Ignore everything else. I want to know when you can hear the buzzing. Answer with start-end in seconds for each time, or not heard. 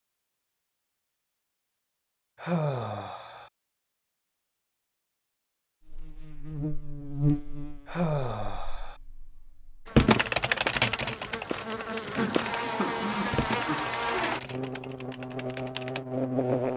5.8-16.7.